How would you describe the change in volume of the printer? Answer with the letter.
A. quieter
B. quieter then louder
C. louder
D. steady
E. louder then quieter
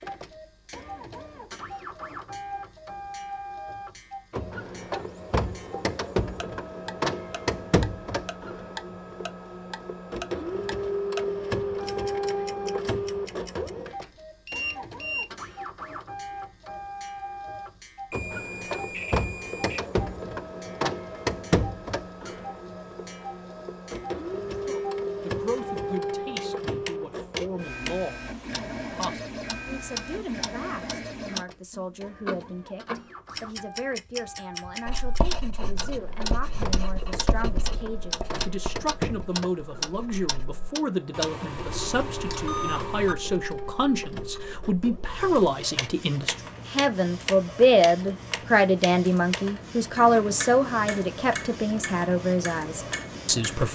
A.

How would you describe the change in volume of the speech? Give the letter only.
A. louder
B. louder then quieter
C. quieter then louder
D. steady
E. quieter
A.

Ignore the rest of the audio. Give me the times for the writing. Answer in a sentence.
The writing can be heard from 34.9 to 40.6 s.